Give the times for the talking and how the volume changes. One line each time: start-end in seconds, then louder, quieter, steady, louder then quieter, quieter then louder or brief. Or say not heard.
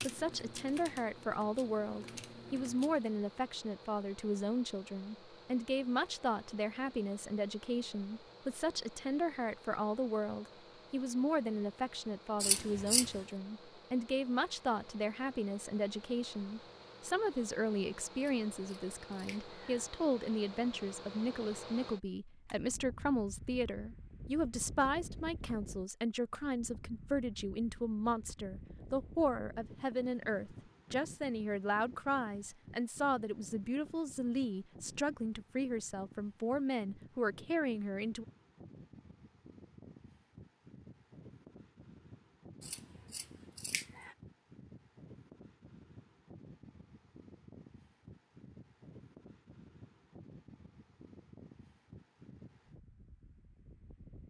0.0-38.2 steady.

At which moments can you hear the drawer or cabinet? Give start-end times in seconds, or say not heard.
not heard.